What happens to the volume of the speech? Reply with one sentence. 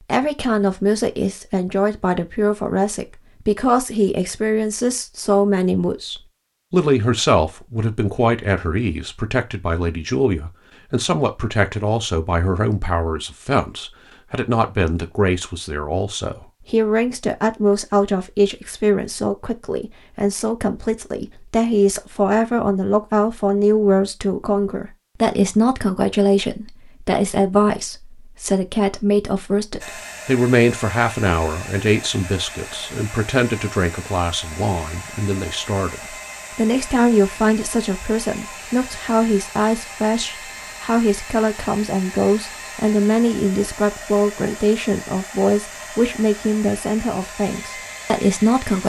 The loudness of the speech stays about the same.